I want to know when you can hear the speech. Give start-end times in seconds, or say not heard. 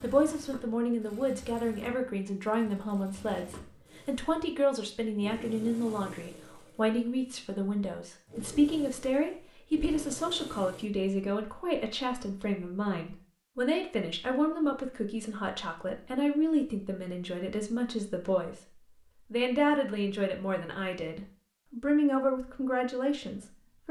0.0-18.6, 19.3-23.8.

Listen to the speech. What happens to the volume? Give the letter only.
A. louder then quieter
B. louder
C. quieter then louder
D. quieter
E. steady
E.